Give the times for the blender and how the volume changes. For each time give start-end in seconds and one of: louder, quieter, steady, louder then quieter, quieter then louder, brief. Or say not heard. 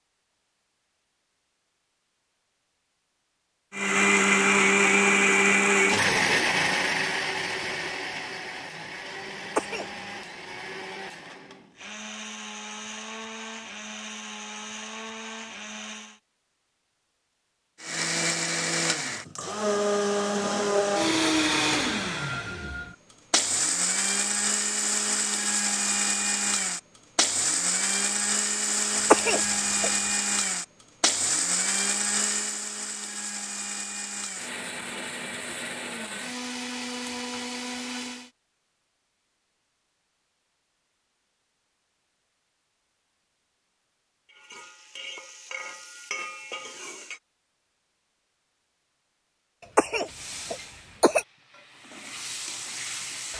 3.7-16.2 quieter
17.8-38.3 quieter.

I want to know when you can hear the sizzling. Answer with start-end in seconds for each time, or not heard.
44.2-47.2, 50.0-53.3.